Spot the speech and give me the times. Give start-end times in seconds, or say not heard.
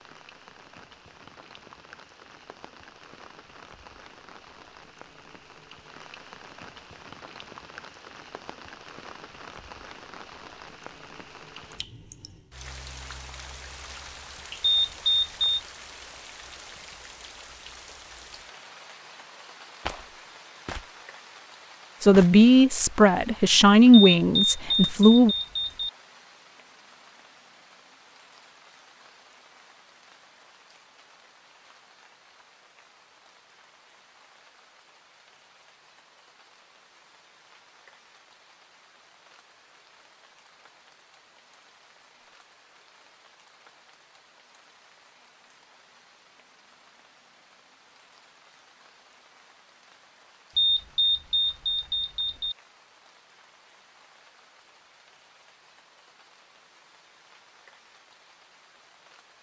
22.0-25.4.